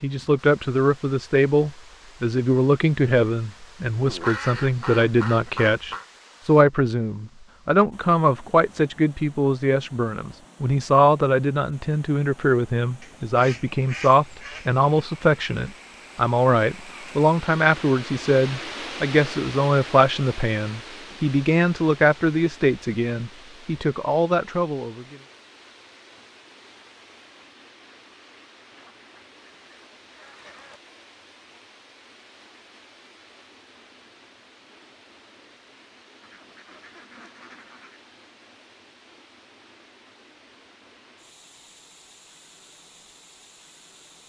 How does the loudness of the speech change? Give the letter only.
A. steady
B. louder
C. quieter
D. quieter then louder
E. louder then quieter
A.